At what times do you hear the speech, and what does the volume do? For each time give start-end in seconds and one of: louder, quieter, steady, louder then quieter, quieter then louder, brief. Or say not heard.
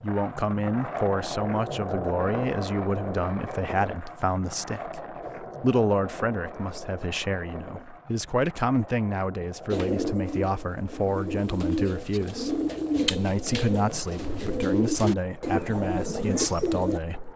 0.0-17.3 steady.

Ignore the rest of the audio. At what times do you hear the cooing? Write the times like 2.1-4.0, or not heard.
9.7-17.0.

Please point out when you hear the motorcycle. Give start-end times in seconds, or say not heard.
not heard.